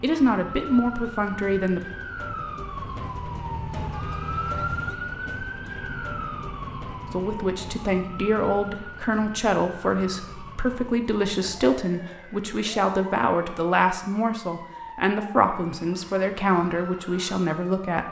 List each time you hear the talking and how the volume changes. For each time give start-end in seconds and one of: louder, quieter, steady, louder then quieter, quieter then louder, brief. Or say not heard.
0.0-1.8 brief
7.1-18.0 steady.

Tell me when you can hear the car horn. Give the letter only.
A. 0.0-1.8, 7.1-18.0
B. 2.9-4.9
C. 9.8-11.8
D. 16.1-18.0
B.